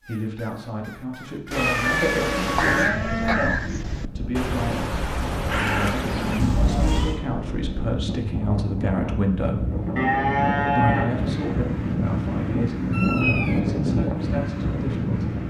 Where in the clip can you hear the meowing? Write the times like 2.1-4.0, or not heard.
1.5-2.9, 6.3-7.2, 12.9-13.6.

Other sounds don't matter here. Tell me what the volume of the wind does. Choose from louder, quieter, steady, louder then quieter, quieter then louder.
louder.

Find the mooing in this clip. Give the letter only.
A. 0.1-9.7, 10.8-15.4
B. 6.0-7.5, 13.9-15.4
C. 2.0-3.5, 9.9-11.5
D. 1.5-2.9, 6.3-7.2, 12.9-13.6
C.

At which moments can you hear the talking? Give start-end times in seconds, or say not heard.
0.1-9.7, 10.8-15.4.